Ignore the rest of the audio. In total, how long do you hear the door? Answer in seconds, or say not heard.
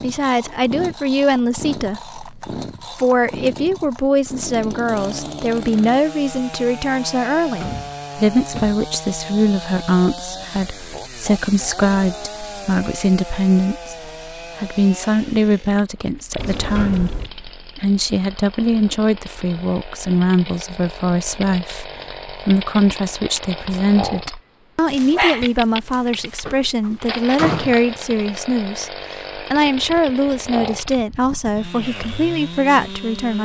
4 s.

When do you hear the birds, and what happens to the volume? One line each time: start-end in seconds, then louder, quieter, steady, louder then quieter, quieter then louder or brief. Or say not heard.
not heard.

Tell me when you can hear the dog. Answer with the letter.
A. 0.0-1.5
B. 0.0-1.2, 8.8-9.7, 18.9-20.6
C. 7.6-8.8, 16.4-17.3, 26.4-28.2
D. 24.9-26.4
D.